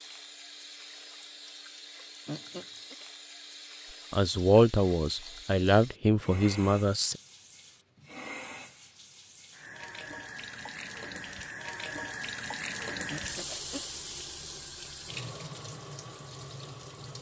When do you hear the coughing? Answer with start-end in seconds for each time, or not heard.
2.2-3.0, 13.1-13.8.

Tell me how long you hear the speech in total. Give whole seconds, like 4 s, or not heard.
3 s.